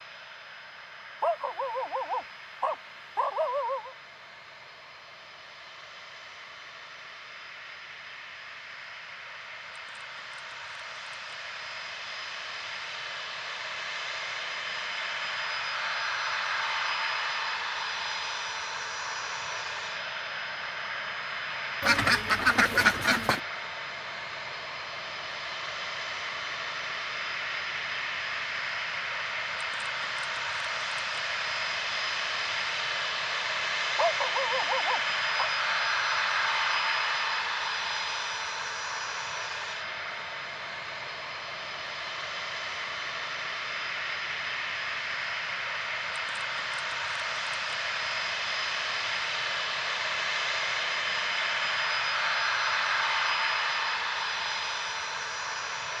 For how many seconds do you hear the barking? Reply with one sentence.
The barking can be heard for 4 seconds in total.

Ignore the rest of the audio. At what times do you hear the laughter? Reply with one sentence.
The laughter can't be heard in this clip.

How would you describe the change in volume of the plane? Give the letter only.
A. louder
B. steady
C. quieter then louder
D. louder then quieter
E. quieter
A.